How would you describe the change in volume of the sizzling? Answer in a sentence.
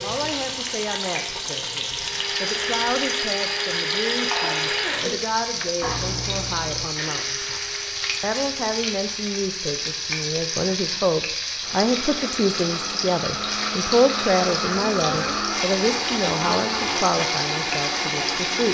The volume of the sizzling stays about the same.